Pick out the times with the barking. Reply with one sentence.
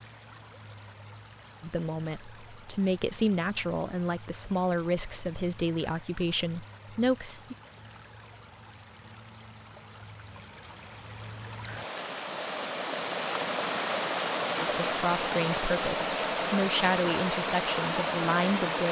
The barking can't be heard in this clip.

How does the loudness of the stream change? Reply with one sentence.
The loudness of the stream goes up.